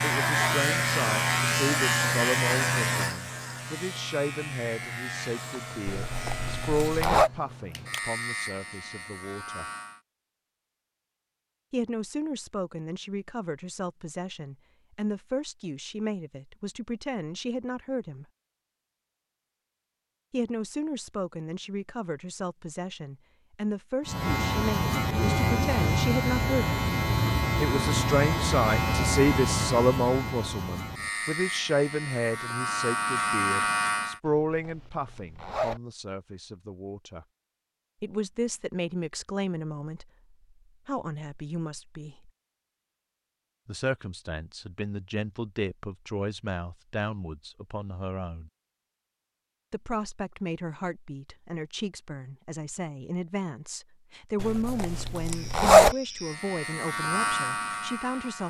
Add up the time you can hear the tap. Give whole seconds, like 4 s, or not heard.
not heard.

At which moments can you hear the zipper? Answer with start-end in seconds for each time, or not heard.
5.8-7.3, 34.2-35.8, 54.4-56.0.